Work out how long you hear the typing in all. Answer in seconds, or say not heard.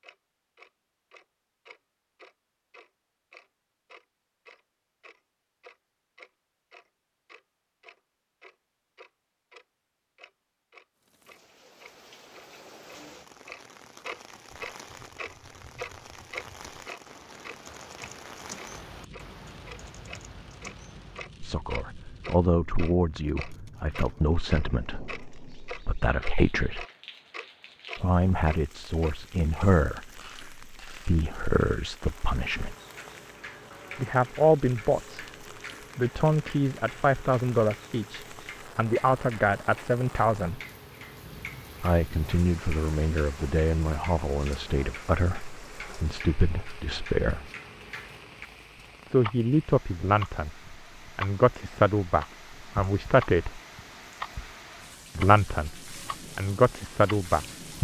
7 s.